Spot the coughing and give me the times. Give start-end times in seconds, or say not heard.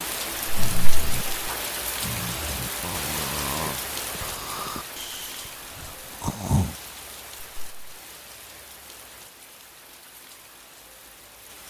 not heard.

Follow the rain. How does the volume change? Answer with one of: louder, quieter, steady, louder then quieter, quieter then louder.
quieter.